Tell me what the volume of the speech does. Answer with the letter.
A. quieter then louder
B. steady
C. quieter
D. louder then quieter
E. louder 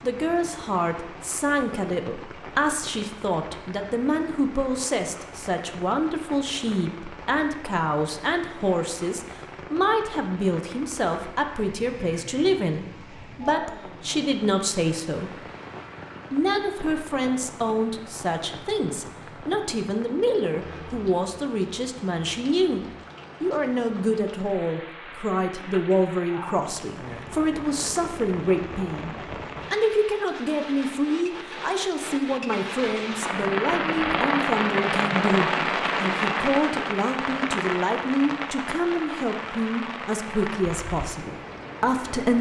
B.